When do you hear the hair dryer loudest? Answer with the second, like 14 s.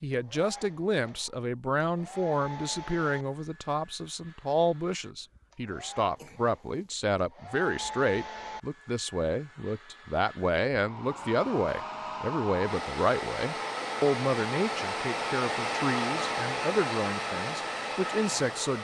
16 s.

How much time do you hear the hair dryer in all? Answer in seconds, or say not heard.
19 s.